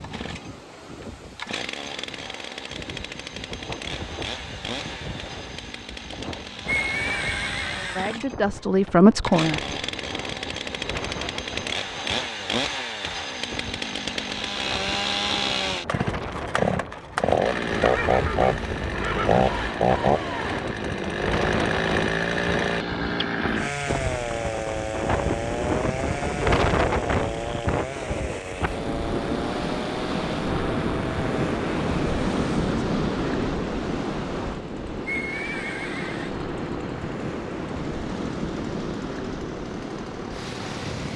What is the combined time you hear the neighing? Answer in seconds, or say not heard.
5 s.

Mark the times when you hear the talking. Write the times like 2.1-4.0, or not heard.
8.0-9.7.